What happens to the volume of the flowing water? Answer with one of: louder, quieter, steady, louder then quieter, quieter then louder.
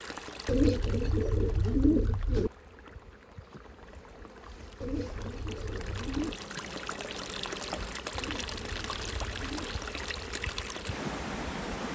quieter then louder.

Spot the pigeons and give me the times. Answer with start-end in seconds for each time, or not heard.
0.5-2.5, 4.8-6.4, 8.2-9.8.